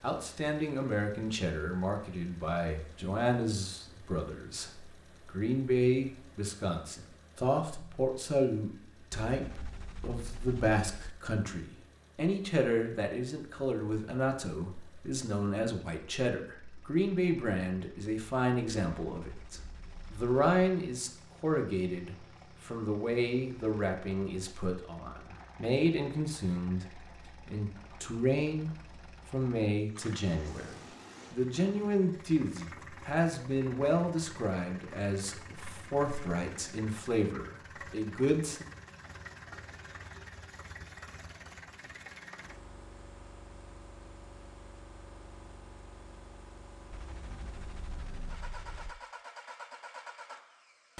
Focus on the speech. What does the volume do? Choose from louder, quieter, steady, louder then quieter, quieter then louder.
steady.